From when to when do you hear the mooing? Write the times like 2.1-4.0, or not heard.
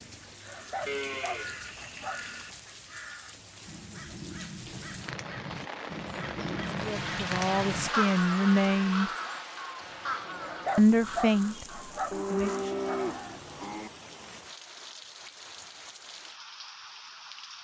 0.8-2.5, 7.7-9.4, 12.1-13.9.